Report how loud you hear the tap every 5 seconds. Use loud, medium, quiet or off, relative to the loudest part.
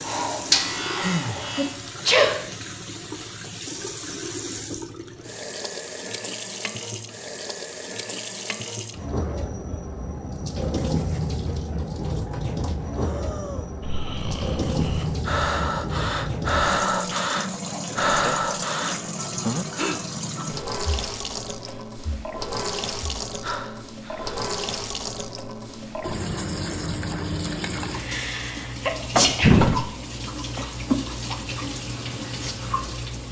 medium, medium, loud, loud, loud, loud, loud.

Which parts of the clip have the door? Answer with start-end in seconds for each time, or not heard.
not heard.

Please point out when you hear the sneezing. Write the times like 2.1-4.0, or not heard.
1.6-2.4, 27.9-29.9.